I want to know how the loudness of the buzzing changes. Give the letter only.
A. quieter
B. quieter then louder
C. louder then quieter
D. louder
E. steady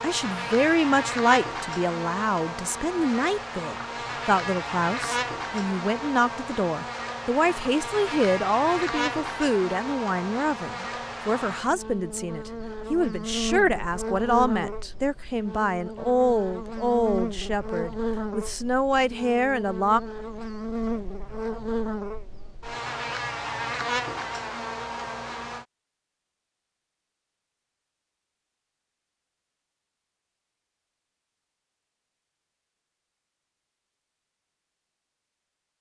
E.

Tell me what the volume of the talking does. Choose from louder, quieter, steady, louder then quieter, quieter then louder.
steady.